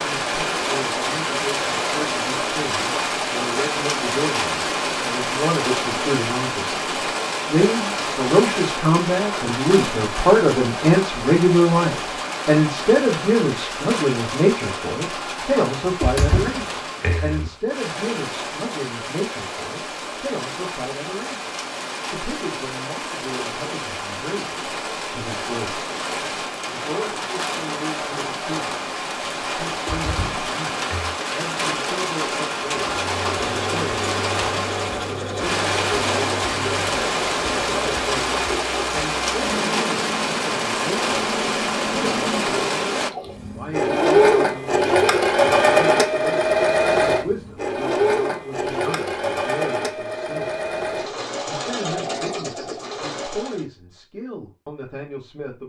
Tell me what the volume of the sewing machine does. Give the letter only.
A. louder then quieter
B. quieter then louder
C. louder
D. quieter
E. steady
A.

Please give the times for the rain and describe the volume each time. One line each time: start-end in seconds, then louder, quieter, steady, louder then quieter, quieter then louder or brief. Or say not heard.
0.0-43.1 quieter then louder.